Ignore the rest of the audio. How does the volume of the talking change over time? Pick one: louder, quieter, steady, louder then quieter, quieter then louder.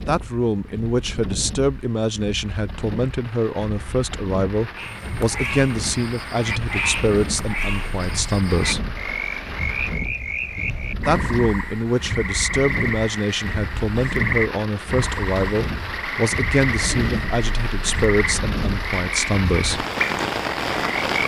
steady.